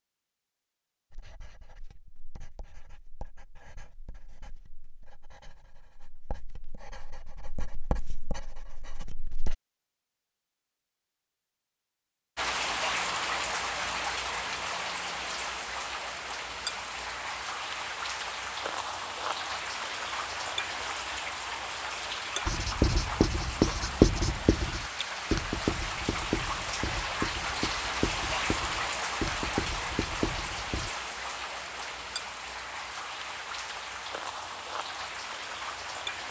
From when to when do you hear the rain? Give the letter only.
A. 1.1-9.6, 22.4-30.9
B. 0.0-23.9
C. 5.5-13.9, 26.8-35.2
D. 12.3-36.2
D.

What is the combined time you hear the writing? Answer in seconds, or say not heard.
17 s.